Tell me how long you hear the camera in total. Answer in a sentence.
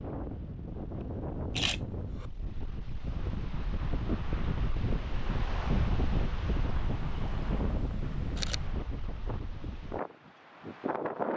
The camera can be heard for 3 seconds in total.